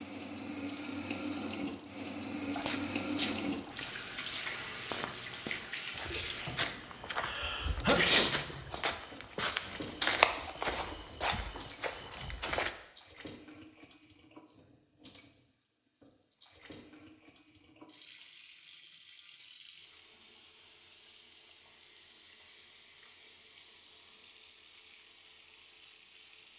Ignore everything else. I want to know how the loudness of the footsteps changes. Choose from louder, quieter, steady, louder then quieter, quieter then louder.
louder then quieter.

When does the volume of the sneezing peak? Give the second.
8 s.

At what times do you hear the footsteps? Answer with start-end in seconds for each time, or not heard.
2.5-12.7.